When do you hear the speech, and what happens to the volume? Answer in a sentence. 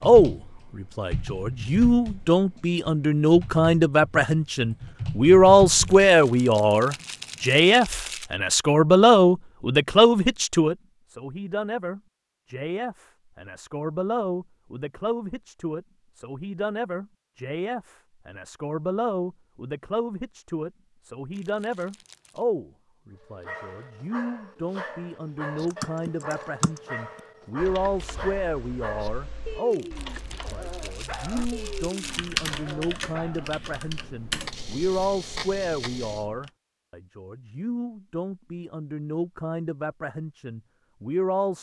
The speech can be heard from 0.0 to 41.5 s, getting quieter.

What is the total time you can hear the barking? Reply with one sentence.
The barking can be heard for 10 seconds in total.